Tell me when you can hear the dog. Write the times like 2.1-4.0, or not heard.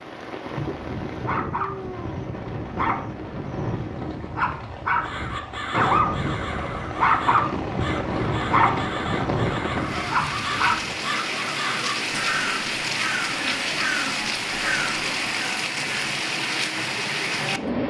0.6-10.9.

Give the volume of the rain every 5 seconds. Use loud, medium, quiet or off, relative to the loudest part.
medium, medium, loud, loud.